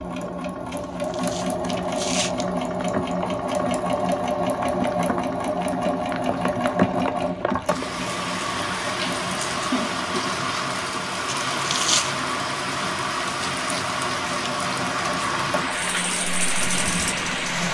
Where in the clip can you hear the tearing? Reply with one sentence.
You can hear the tearing from 0.7 to 2.5 s and from 11.2 to 12.1 s.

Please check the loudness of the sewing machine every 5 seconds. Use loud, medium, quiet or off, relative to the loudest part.
loud, loud, medium, medium.